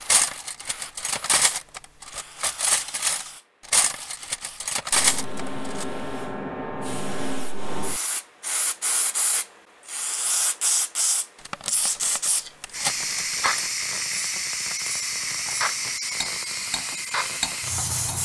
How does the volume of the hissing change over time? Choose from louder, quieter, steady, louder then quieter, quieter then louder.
louder.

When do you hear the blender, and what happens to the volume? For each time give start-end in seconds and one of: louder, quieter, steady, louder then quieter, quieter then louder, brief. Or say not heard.
not heard.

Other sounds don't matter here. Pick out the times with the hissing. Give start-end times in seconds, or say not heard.
0.0-18.2.